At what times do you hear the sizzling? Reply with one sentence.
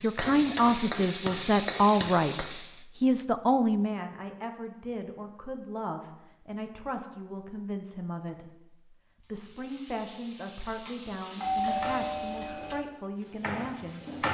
You can hear the sizzling from 0.0 to 2.9 s and from 9.2 to 12.6 s.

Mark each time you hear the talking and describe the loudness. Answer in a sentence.
You can hear the talking from 0.0 to 14.0 s, getting quieter.